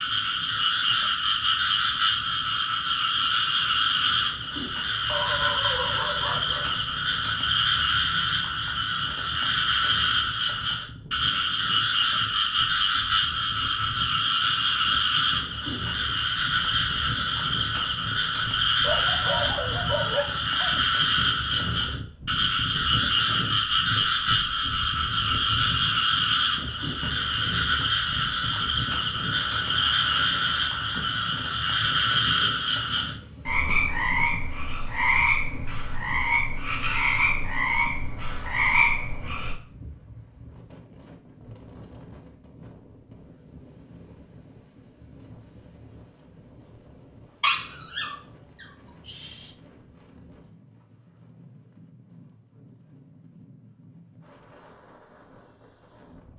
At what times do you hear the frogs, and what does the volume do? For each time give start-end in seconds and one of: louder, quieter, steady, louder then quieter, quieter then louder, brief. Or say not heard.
0.0-39.5 steady.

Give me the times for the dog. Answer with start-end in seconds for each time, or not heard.
5.0-6.7, 18.8-20.8, 47.4-49.5.